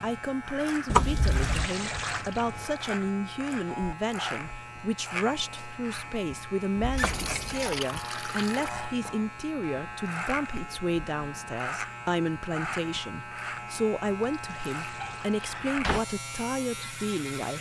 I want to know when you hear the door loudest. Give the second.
1 s.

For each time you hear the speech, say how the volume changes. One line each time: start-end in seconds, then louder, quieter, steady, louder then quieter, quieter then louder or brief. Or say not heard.
0.0-17.5 steady.